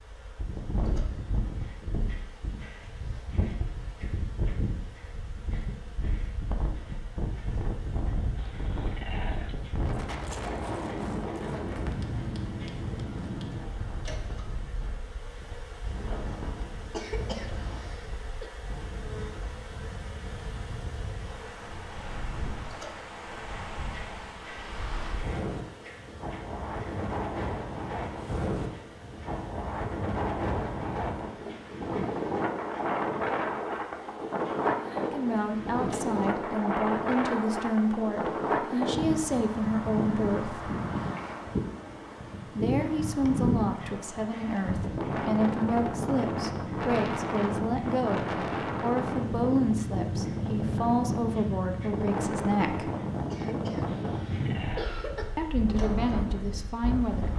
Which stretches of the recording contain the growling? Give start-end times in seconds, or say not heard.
8.3-9.6, 53.9-55.0.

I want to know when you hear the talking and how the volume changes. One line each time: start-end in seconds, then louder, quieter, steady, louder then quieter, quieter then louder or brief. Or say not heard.
35.0-40.7 steady
42.5-52.9 steady
55.4-57.3 brief.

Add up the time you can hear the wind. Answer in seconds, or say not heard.
57 s.